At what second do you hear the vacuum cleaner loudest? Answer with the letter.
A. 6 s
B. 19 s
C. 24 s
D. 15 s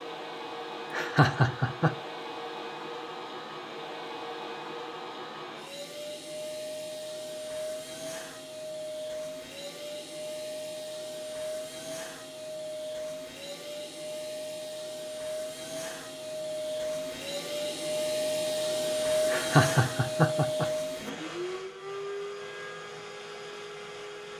B.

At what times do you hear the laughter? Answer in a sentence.
You can hear the laughter from 0.9 to 1.9 s and from 19.2 to 20.6 s.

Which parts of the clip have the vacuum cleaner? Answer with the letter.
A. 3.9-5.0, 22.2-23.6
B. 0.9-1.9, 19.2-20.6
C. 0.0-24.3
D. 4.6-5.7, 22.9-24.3
C.